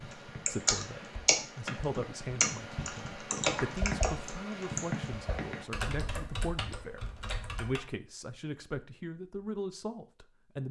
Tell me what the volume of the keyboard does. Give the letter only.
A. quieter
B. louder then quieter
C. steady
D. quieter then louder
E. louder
A.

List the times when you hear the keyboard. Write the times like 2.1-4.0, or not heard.
0.0-7.8.